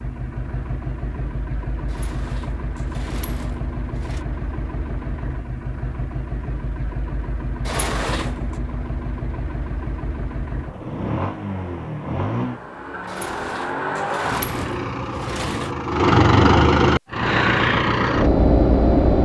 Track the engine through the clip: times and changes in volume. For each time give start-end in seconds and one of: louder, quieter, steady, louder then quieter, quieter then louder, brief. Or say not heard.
0.0-19.2 louder.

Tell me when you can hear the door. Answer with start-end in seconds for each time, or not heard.
1.9-4.2, 7.7-8.6, 13.1-15.8.